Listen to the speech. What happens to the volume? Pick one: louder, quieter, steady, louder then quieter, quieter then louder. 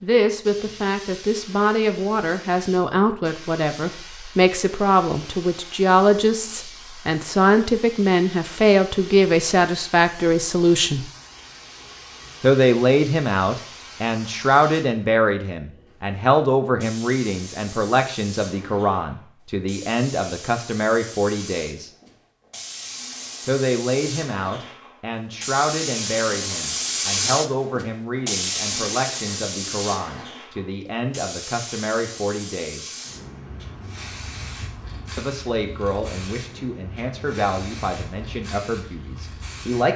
quieter.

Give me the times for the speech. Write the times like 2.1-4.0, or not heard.
0.0-11.1, 12.4-21.9, 23.4-33.0, 35.1-39.9.